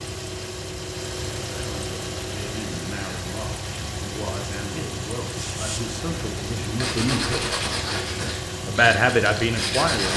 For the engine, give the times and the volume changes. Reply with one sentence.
The engine can be heard from 0.0 to 10.1 s, at a steady volume.